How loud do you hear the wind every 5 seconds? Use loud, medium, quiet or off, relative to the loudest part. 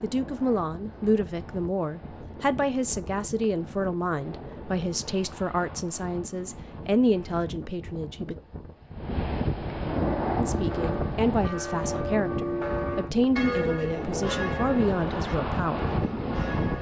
quiet, medium, loud, loud.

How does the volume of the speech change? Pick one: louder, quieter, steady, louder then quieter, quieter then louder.
steady.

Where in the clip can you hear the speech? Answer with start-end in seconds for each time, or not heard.
0.0-8.3, 10.3-15.8.